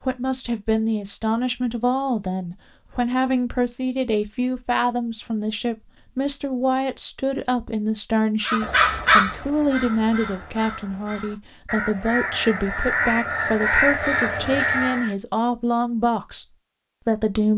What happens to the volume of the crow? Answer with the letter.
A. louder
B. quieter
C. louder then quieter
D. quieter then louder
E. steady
D.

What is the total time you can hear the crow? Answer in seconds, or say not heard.
7 s.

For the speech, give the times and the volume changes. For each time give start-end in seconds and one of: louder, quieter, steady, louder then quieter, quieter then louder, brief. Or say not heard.
0.0-16.4 steady
17.1-17.5 brief.